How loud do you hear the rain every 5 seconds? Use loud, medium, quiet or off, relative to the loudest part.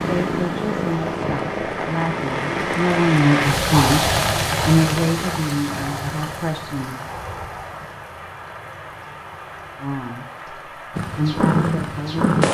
loud, medium, quiet.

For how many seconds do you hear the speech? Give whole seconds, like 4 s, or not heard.
9 s.